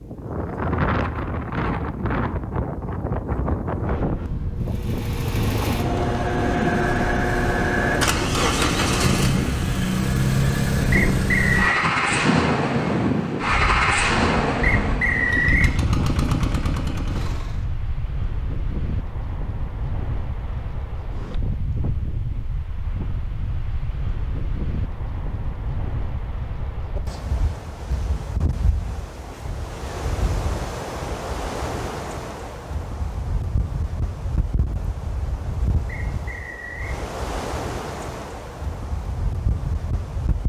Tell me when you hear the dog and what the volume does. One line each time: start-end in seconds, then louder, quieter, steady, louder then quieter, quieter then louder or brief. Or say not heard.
not heard.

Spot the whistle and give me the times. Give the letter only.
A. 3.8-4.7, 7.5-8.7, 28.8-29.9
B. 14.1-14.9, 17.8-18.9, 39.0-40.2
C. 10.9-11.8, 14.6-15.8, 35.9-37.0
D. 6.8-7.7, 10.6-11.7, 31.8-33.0
C.